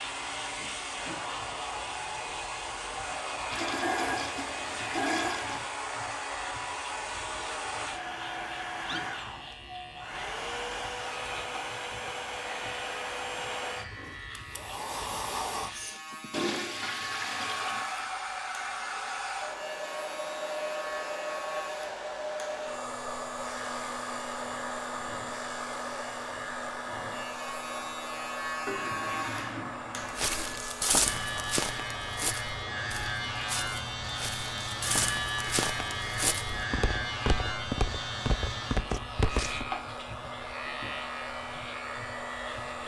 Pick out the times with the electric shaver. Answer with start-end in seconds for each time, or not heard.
0.0-42.8.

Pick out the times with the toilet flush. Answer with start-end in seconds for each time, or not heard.
3.5-5.7, 16.3-17.9, 28.6-30.6.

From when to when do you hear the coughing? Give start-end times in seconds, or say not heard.
not heard.